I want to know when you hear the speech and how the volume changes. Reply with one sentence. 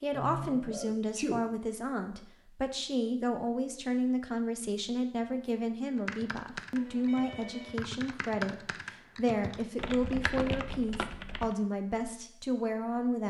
The speech can be heard from 0.0 to 13.2 s, at a steady volume.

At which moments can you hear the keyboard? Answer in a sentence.
You can hear the keyboard from 6.0 to 11.6 s.